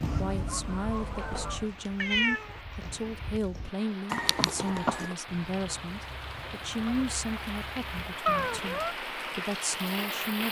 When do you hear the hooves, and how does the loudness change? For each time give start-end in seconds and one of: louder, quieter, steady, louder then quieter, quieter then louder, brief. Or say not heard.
0.0-5.2 quieter then louder.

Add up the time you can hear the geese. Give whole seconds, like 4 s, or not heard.
5 s.